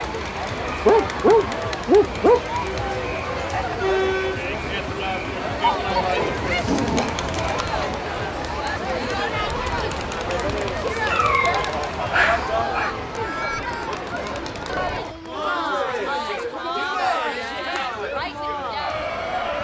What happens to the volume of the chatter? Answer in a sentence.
The loudness of the chatter stays about the same.